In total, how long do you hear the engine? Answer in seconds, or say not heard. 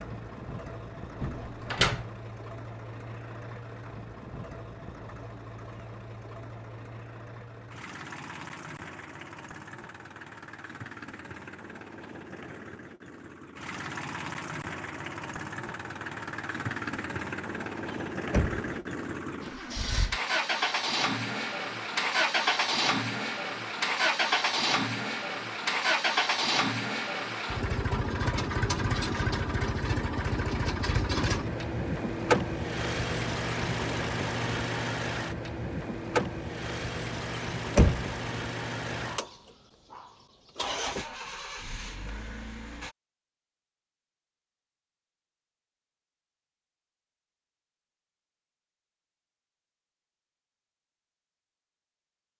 43 s.